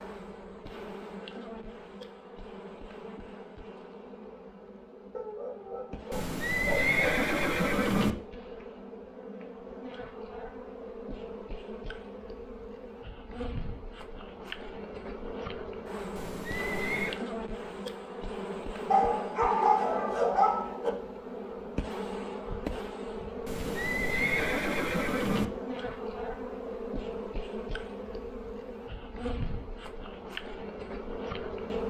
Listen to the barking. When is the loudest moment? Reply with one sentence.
The volume of the barking peaks at 20 seconds.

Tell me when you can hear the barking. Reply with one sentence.
The barking can be heard from 5.1 to 7.2 s and from 18.9 to 20.9 s.